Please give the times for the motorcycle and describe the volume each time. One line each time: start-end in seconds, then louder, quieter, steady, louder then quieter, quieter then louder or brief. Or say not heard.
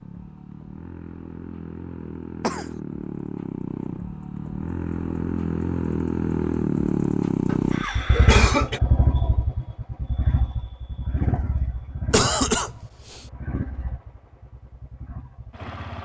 0.0-15.9 louder then quieter.